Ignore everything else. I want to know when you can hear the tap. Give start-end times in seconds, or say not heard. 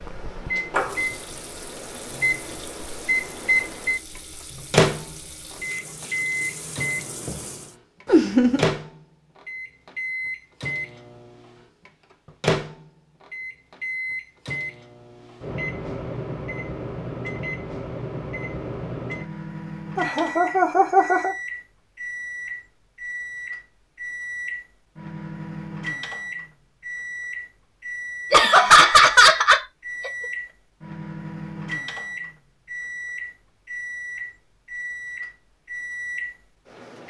0.0-7.8.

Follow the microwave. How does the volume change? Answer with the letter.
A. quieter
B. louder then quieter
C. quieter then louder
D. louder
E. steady
A.